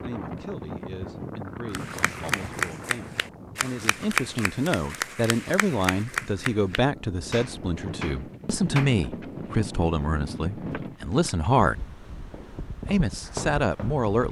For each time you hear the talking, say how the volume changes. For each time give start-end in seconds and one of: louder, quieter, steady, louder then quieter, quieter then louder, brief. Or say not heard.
0.0-11.9 louder
12.8-14.2 brief.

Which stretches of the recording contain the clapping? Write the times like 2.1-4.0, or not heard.
1.7-8.9.